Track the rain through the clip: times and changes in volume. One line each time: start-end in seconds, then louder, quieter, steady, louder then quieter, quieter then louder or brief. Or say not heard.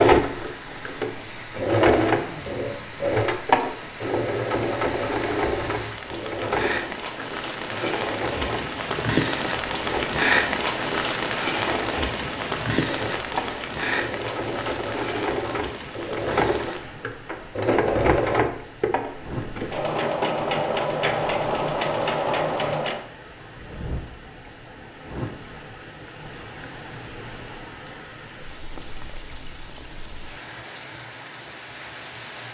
0.1-32.4 louder then quieter.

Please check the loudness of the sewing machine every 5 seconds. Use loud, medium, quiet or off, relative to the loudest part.
loud, medium, medium, loud, loud, off, off.